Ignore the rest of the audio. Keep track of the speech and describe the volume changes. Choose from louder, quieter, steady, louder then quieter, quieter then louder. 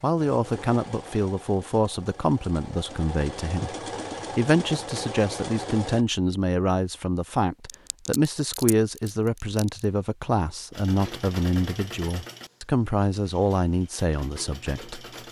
steady.